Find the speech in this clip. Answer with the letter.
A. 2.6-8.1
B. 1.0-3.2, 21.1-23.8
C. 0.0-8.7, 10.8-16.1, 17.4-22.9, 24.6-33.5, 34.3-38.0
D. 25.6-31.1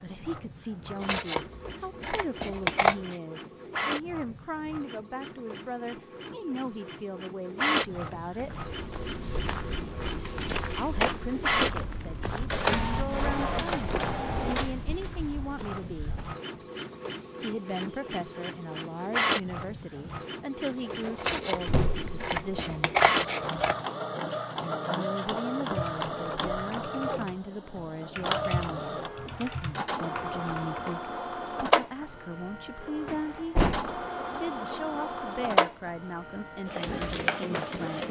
C.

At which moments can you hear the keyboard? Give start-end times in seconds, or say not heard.
25.6-31.1.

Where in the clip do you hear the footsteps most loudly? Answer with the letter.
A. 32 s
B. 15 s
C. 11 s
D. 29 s
C.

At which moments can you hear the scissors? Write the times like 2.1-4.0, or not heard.
1.0-3.2, 21.1-23.8.